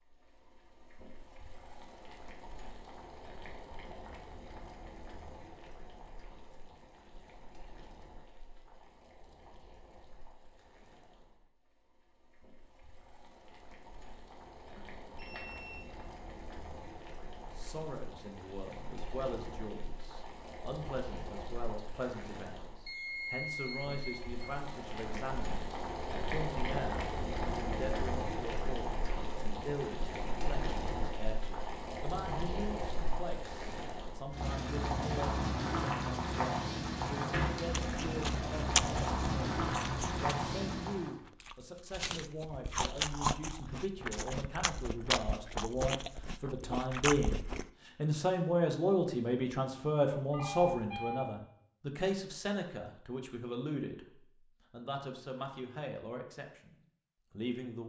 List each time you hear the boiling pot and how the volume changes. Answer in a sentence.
You can hear the boiling pot from 0.1 to 41.1 s, getting louder.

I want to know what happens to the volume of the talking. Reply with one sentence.
The loudness of the talking goes up.